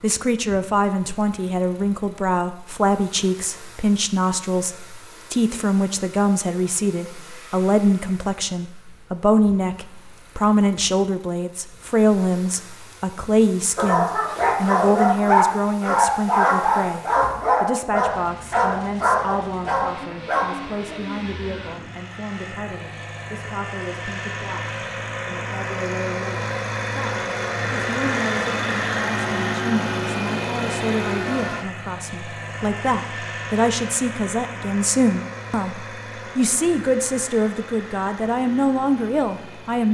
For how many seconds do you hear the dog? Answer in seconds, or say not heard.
7 s.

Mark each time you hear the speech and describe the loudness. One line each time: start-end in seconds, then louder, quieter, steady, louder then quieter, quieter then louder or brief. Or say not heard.
0.0-39.8 quieter then louder.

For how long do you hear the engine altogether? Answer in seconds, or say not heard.
40 s.